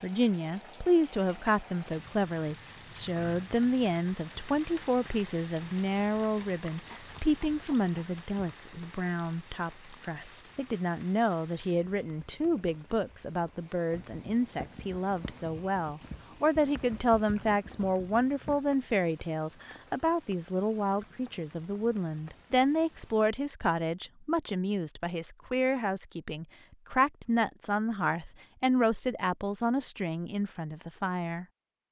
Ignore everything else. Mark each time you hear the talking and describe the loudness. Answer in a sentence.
You can hear the talking from 0.0 to 31.4 s, at a steady volume.